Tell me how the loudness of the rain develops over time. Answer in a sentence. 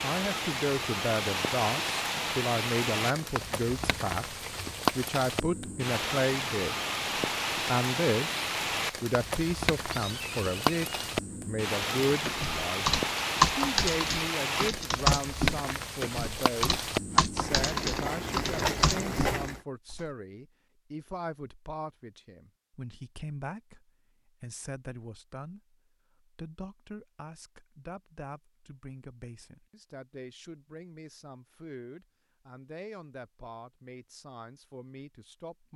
The loudness of the rain stays about the same.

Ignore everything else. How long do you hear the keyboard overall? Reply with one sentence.
The keyboard can be heard for 8 seconds in total.